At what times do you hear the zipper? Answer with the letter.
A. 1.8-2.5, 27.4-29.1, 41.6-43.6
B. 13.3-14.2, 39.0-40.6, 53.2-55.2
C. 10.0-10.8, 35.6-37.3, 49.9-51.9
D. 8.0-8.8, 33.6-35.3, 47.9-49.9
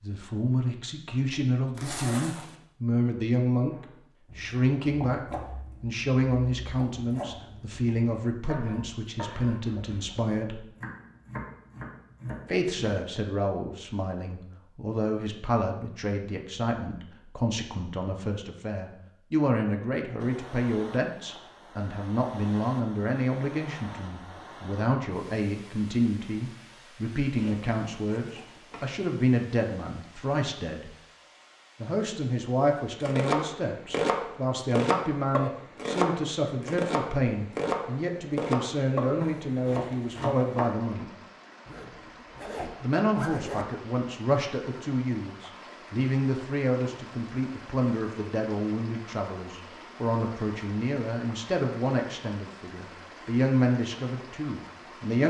A.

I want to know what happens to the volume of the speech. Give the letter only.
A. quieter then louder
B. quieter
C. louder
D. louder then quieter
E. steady
E.